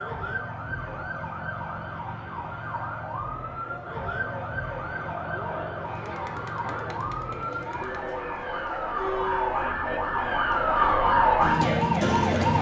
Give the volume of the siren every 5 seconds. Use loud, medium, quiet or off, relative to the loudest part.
quiet, medium, loud.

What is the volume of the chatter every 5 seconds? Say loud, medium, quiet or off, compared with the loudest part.
medium, loud, loud.